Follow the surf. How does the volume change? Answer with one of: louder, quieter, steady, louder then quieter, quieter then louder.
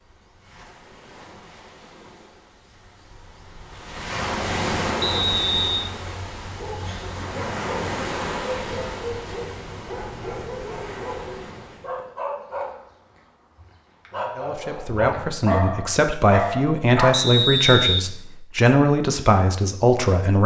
louder then quieter.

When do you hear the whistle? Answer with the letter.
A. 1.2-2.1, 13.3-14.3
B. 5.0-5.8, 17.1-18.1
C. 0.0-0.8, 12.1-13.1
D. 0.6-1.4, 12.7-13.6
B.